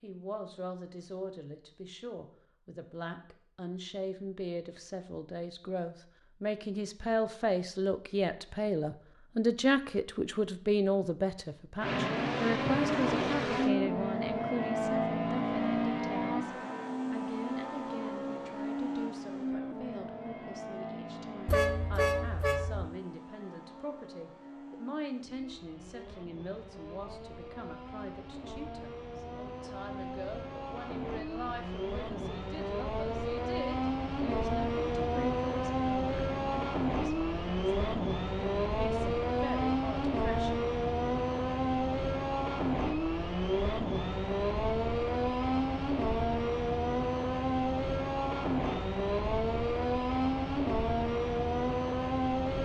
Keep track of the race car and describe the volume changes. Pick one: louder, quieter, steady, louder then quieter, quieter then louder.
quieter then louder.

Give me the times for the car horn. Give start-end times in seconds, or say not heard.
21.4-22.9.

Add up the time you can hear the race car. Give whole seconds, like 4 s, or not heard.
41 s.